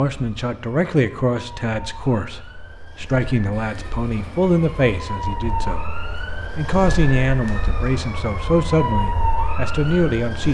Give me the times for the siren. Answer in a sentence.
The siren can be heard from 0.1 to 10.4 s.